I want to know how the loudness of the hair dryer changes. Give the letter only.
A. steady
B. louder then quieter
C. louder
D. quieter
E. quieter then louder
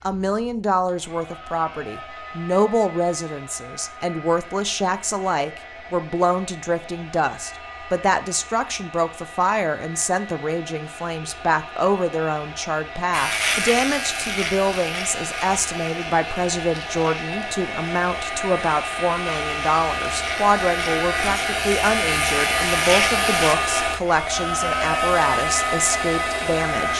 C.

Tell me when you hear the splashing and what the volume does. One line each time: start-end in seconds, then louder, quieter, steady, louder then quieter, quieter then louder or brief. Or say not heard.
not heard.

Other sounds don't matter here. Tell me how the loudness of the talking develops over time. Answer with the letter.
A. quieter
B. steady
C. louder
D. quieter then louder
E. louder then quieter
B.